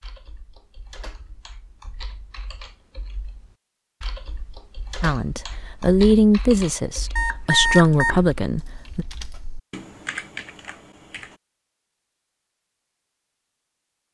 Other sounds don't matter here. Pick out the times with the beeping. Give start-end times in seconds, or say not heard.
7.2-8.3.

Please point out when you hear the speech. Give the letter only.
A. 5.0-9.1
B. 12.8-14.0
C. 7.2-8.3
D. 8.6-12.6
A.